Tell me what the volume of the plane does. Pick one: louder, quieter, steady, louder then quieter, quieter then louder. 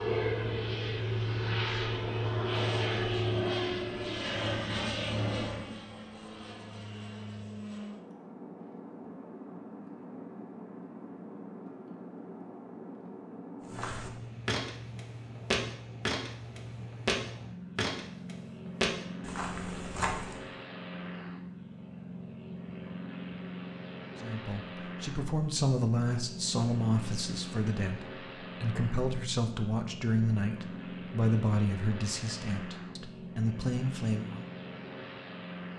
quieter.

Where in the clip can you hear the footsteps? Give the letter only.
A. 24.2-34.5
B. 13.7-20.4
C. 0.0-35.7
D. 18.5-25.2
B.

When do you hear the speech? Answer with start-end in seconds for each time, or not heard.
24.2-34.5.